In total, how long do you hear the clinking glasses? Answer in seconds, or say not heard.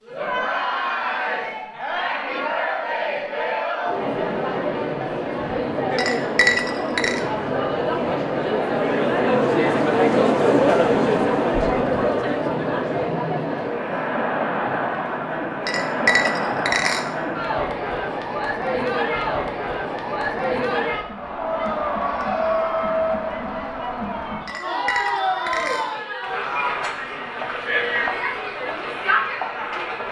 4 s.